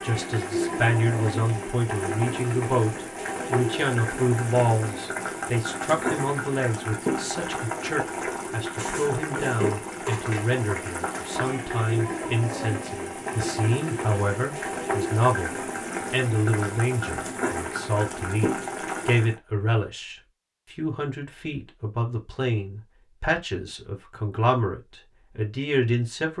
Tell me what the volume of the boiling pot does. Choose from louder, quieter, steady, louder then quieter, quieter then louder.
steady.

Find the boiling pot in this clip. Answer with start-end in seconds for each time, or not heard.
0.0-19.4.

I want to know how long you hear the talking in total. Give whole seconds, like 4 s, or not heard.
26 s.